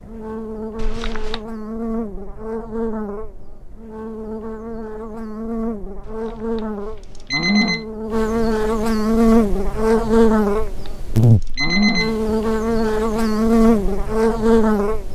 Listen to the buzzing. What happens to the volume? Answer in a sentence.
The volume of the buzzing goes up.